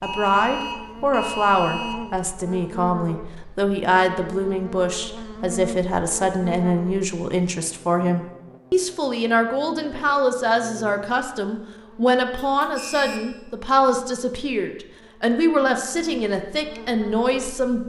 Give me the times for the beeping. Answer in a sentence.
You can hear the beeping from 0.0 to 1.9 s and from 12.3 to 13.2 s.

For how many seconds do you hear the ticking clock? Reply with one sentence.
You can't hear the ticking clock here.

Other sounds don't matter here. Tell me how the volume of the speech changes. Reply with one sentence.
The loudness of the speech stays about the same.